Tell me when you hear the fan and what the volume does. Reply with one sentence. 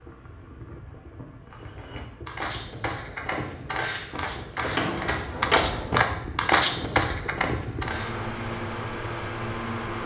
You can hear the fan from 0.0 to 10.0 s, getting louder.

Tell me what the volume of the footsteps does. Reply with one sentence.
The loudness of the footsteps goes up.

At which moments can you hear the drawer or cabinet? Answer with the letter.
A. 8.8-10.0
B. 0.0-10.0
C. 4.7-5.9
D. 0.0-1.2
C.